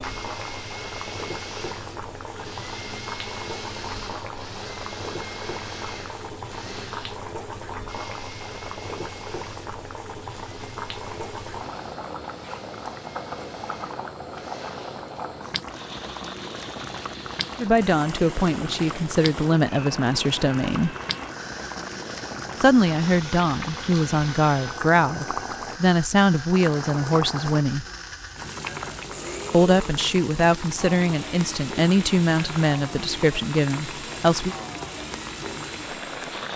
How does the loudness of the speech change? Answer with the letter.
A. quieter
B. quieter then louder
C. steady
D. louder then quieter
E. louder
C.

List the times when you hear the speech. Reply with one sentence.
The speech can be heard from 17.6 to 20.9 s, from 22.6 to 27.9 s and from 29.5 to 34.5 s.